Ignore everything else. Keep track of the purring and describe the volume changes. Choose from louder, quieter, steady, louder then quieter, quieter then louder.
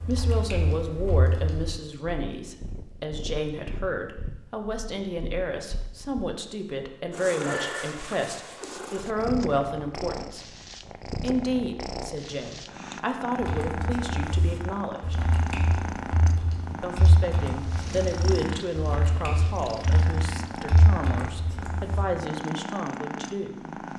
louder.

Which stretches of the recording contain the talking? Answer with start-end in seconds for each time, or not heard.
0.1-10.4, 11.2-15.2, 16.8-23.9.